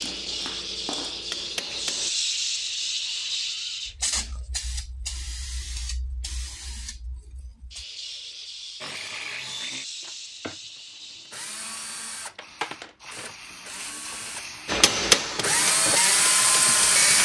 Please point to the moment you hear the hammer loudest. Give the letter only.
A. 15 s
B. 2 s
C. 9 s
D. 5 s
A.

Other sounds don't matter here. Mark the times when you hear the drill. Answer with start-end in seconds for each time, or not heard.
8.8-17.1.